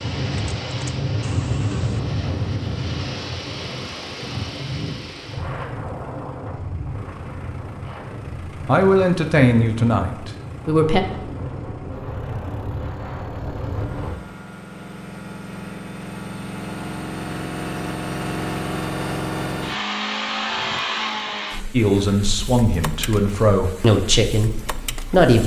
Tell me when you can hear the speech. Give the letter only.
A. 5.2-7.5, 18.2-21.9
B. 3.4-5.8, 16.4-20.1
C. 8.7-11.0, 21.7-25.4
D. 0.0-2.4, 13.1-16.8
C.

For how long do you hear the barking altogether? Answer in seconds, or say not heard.
not heard.